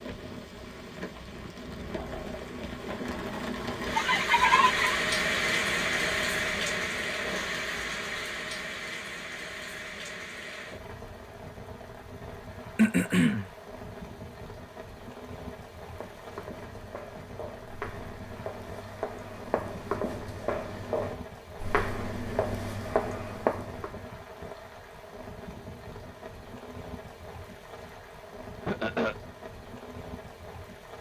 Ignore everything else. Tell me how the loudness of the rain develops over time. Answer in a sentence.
The loudness of the rain goes down.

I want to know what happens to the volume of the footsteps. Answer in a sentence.
The loudness of the footsteps goes up.